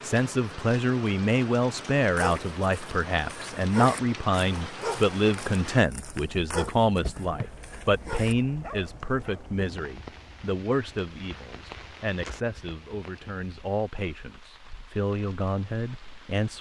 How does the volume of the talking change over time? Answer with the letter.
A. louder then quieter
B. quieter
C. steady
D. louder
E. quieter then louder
B.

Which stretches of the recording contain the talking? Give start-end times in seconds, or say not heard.
0.0-16.5.